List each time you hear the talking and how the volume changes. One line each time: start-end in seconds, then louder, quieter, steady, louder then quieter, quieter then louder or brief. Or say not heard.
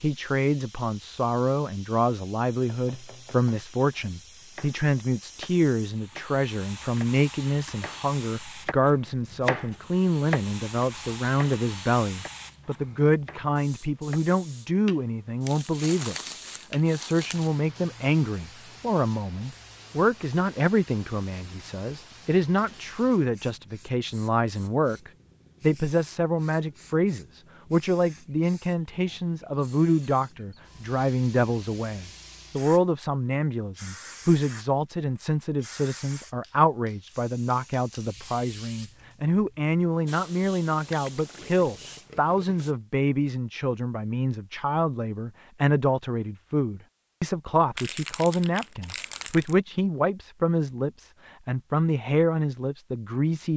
0.0-53.5 steady.